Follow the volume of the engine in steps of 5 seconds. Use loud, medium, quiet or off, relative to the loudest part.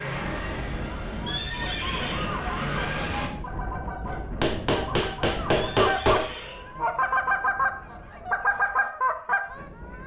loud, off.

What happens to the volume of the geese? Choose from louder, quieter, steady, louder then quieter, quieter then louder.
louder.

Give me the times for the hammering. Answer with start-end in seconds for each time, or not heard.
4.4-6.3.